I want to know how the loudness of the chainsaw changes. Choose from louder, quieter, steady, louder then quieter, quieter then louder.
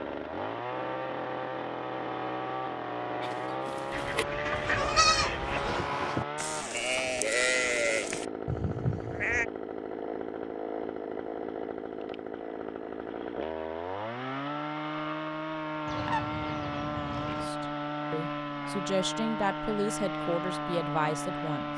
steady.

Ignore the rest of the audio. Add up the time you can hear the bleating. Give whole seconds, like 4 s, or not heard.
6 s.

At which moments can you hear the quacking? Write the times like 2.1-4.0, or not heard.
3.9-5.8, 15.8-17.5.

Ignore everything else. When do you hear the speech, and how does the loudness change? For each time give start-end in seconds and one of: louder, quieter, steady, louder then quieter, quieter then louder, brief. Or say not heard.
17.2-21.7 louder.